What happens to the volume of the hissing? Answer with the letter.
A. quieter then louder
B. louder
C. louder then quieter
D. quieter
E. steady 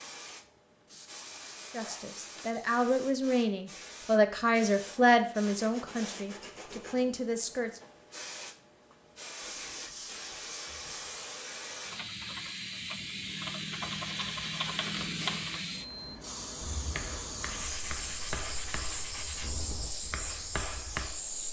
B.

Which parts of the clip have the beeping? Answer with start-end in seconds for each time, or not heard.
not heard.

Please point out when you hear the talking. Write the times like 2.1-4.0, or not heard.
1.7-7.8.